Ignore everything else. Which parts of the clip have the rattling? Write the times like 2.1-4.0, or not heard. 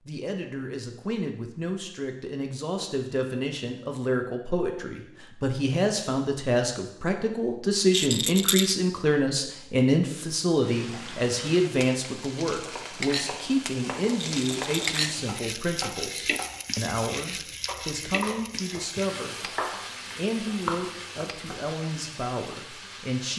7.9-8.8, 14.2-15.1.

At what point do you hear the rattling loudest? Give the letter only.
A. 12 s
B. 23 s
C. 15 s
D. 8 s
D.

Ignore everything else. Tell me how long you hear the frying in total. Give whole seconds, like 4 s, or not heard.
13 s.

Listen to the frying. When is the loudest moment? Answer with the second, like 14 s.
15 s.